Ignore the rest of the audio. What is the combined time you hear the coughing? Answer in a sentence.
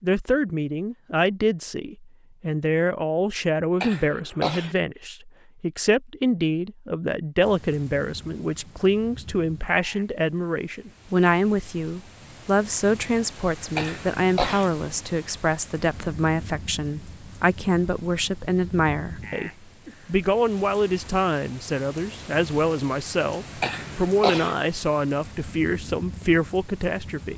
The coughing can be heard for 3 seconds in total.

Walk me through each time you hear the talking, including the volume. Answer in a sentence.
The talking can be heard from 0.0 to 27.3 s, at a steady volume.